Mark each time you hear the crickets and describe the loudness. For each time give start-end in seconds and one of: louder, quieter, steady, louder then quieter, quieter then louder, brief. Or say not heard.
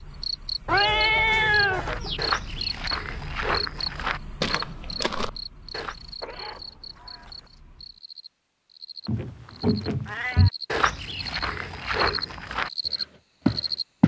0.0-13.8 quieter then louder.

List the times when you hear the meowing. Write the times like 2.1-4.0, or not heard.
0.7-2.2, 6.2-7.5, 10.1-10.5.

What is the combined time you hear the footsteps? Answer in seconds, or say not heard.
9 s.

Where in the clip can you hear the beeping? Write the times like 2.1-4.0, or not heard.
not heard.